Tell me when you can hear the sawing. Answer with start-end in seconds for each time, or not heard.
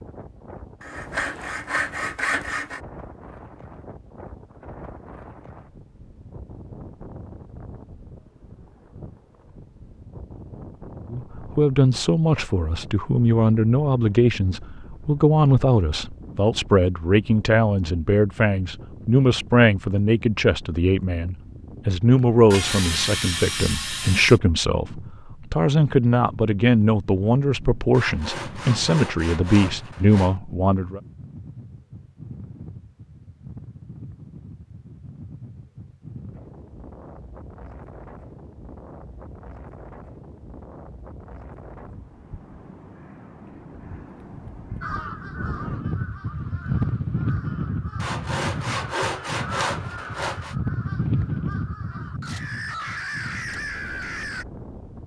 0.8-2.8, 22.5-24.4, 27.9-30.4, 48.0-50.5.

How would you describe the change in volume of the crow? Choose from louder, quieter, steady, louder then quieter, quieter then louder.
quieter then louder.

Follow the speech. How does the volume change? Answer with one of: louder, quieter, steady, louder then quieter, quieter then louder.
steady.